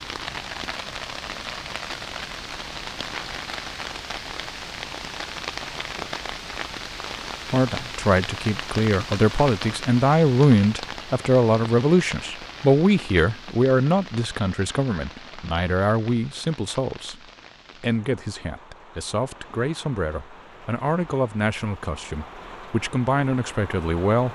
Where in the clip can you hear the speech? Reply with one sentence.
You can hear the speech from 7.5 to 17.2 s and from 17.8 to 24.3 s.